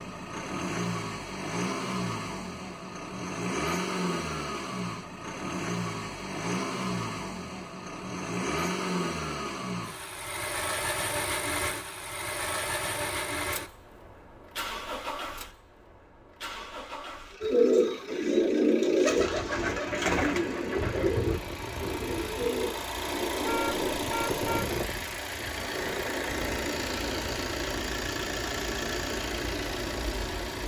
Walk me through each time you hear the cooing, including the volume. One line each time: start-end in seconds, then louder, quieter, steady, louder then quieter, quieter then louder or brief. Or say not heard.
17.4-23.9 quieter.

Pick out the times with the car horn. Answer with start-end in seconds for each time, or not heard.
23.4-24.8.